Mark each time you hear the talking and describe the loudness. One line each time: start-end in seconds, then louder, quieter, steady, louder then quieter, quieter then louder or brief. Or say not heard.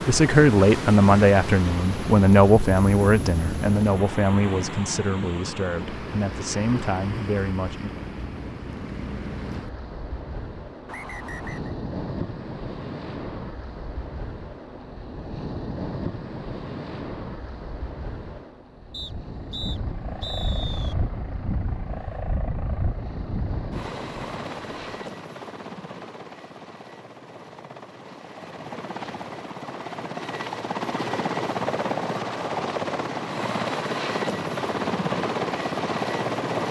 0.1-7.9 quieter.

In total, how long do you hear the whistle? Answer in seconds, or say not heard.
3 s.